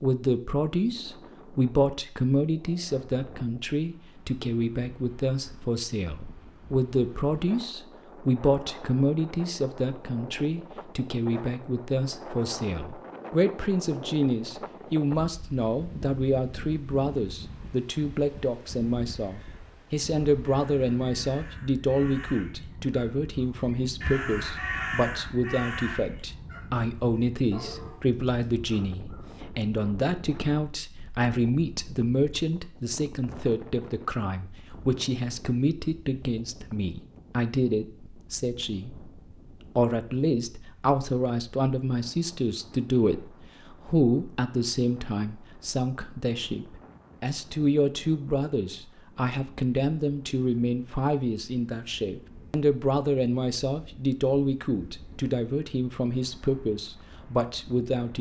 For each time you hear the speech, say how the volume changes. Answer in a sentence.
The speech can be heard from 0.0 to 39.1 s, at a steady volume; and from 39.8 to 58.1 s, at a steady volume.